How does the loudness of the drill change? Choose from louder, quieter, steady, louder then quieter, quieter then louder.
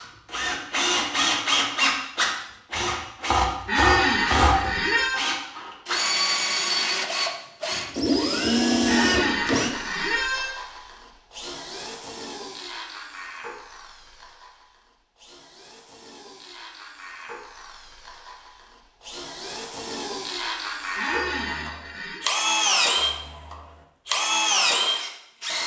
quieter then louder.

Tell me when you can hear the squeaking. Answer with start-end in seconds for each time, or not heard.
3.6-5.2, 8.8-10.6, 20.9-22.2.